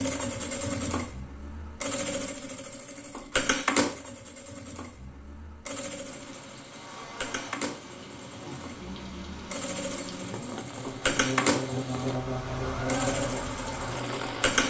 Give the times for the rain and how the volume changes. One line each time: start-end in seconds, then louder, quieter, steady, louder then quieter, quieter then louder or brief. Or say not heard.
6.0-14.6 louder.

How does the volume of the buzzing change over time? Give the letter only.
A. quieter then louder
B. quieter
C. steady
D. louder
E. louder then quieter
D.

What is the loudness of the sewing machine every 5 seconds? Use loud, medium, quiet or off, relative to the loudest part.
loud, medium, loud.